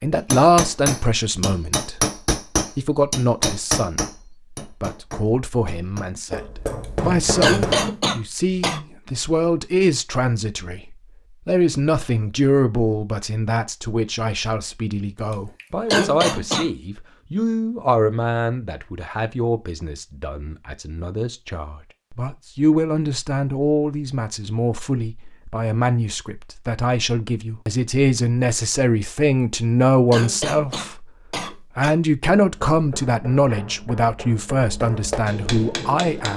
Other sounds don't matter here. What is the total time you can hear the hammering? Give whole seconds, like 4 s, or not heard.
12 s.